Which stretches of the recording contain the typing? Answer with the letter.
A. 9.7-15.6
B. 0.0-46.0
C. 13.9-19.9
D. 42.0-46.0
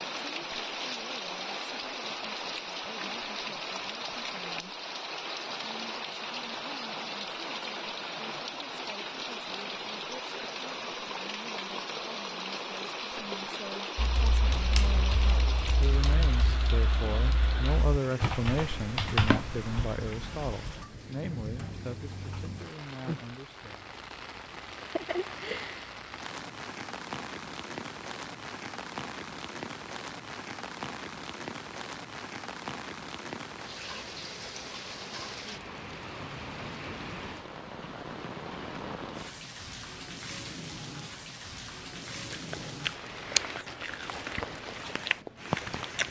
C.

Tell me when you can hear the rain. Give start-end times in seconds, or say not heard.
0.0-46.0.